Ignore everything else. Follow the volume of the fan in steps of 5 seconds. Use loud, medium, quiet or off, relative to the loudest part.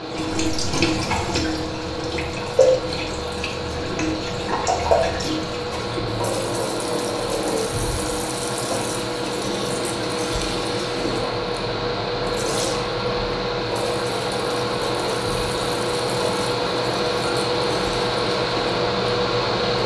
medium, medium, loud, loud.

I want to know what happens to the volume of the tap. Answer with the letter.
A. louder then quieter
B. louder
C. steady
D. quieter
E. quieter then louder
D.